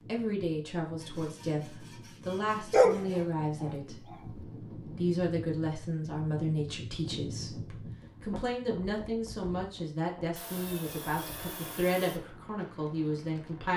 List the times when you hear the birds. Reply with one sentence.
The birds can't be heard in this clip.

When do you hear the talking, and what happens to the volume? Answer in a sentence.
You can hear the talking from 0.1 to 13.7 s, at a steady volume.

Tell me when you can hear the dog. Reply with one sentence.
The dog can be heard from 2.7 to 4.5 s.